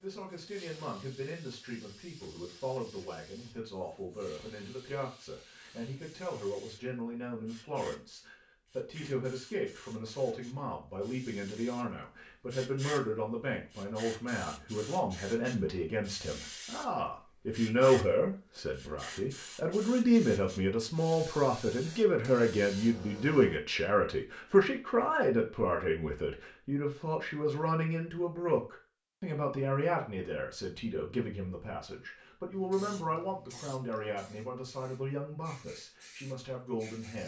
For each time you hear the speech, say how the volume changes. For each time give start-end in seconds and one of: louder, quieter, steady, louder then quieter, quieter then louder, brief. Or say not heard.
0.0-37.2 louder then quieter.